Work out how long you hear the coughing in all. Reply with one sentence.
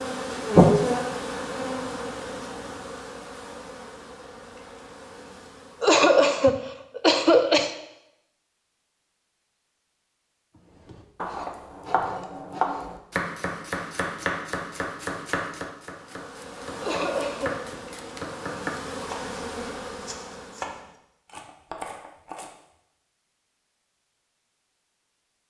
You can hear the coughing for 3 seconds altogether.